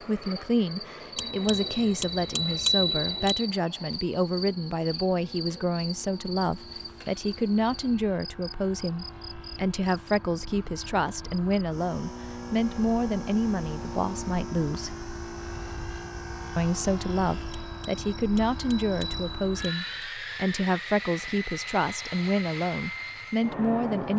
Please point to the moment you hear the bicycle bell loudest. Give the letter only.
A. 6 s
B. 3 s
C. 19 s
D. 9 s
B.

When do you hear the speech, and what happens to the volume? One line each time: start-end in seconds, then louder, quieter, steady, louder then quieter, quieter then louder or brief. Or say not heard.
0.1-14.9 steady
16.6-24.1 steady.